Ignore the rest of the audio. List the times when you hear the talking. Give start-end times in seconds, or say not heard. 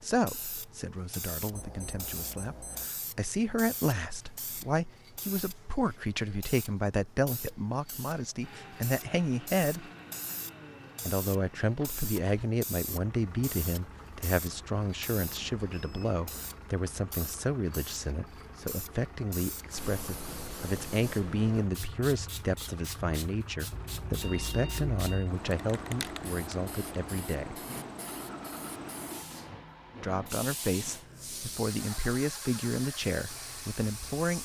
0.0-9.9, 11.1-27.6, 30.0-34.4.